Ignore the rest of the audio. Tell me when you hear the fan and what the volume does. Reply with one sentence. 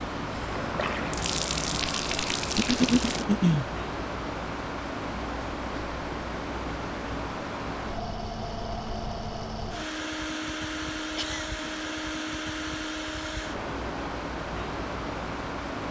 The fan can be heard from 0.0 to 15.8 s, at a steady volume.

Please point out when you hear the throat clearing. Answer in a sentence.
The throat clearing can be heard from 2.5 to 3.6 s and from 11.2 to 11.8 s.